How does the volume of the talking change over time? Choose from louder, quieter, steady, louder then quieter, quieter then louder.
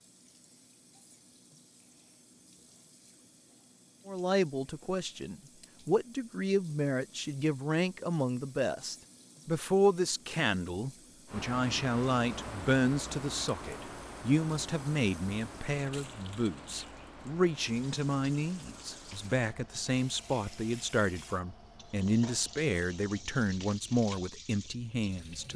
steady.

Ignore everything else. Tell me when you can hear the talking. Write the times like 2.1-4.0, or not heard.
4.0-25.5.